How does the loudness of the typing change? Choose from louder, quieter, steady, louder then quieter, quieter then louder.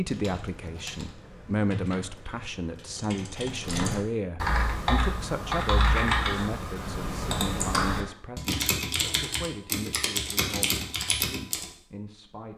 louder.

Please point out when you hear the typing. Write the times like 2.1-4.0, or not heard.
0.1-11.7.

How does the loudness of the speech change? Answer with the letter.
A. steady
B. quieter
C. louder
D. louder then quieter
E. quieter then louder
B.